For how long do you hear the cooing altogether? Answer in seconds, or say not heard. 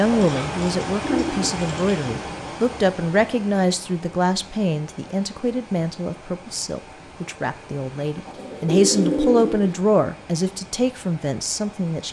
3 s.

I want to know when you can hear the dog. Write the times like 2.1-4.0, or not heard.
not heard.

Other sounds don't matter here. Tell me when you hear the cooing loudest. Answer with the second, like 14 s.
9 s.